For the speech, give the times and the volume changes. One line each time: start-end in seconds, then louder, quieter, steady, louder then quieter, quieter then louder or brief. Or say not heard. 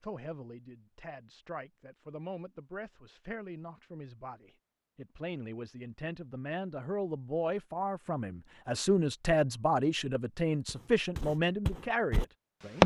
0.0-12.8 louder.